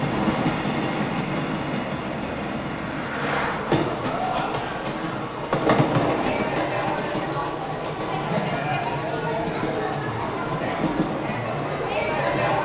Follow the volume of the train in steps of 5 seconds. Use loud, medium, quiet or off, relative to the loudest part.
loud, loud, medium.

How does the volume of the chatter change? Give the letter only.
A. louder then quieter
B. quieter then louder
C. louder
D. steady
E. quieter
C.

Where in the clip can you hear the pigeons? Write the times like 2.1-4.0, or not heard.
not heard.